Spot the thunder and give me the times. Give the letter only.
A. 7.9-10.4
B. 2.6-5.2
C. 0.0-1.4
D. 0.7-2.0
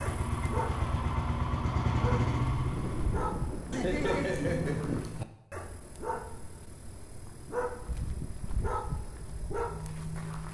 B.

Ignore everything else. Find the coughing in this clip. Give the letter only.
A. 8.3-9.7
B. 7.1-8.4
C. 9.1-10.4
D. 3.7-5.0
D.